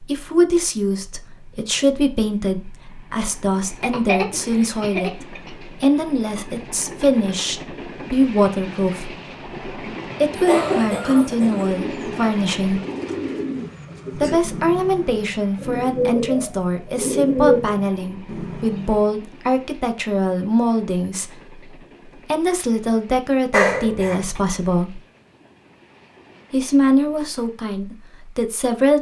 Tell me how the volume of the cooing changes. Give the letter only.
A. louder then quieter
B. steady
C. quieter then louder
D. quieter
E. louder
E.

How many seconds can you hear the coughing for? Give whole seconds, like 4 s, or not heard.
4 s.